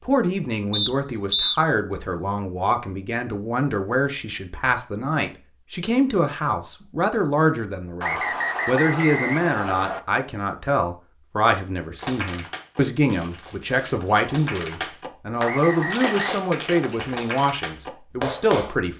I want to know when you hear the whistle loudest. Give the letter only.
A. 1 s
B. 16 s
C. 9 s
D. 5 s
A.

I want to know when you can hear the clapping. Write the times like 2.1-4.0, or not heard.
11.9-18.8.